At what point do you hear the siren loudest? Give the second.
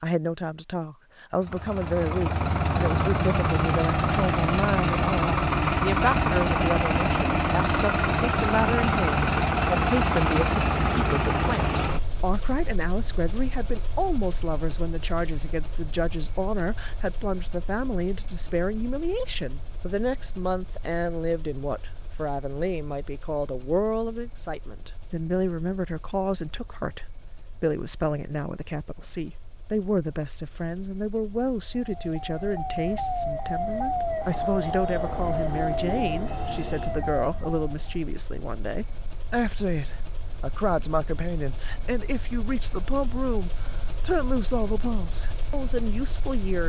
34 s.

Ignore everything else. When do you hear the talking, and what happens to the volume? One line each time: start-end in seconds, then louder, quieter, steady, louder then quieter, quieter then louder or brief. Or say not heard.
0.0-46.6 steady.